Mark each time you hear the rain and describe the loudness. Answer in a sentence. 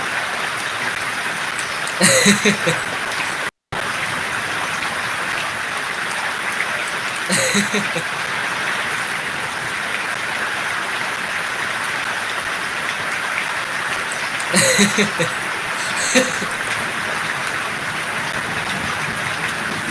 You can hear the rain from 0.0 to 19.8 s, at a steady volume.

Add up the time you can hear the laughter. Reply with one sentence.
The laughter can be heard for 5 seconds in total.